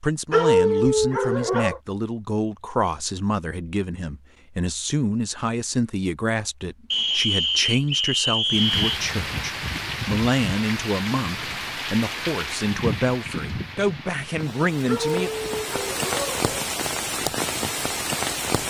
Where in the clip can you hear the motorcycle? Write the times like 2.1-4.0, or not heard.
not heard.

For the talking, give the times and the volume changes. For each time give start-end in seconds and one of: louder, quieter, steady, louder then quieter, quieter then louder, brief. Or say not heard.
0.0-15.3 steady.